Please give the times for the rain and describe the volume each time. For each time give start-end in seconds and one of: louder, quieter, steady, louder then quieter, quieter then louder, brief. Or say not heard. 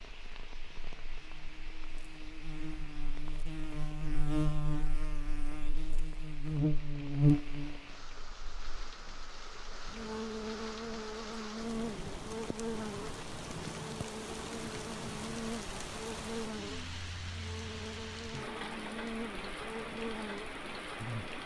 0.0-21.4 louder.